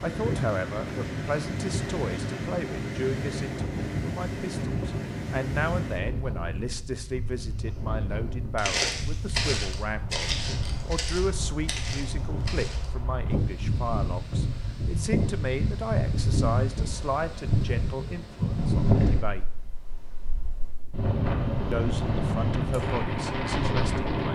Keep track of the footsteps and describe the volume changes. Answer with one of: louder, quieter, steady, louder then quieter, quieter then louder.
quieter.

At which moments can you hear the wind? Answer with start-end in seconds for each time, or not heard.
0.0-24.2.